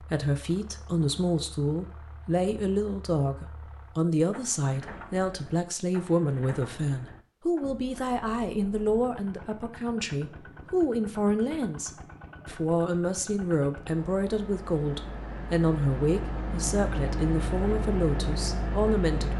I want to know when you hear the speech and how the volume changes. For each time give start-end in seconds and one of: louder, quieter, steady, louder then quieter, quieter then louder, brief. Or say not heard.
0.0-19.3 steady.